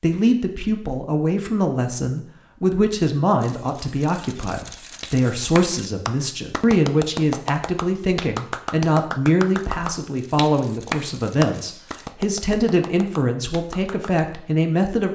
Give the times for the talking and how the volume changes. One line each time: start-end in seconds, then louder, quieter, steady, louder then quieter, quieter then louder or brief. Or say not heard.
0.0-15.1 steady.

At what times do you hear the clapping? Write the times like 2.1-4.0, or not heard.
5.0-14.3.